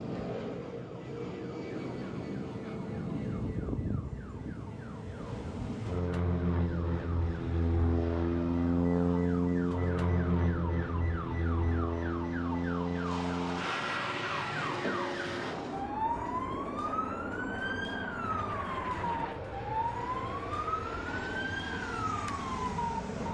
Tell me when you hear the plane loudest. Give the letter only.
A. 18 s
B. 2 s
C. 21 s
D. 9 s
D.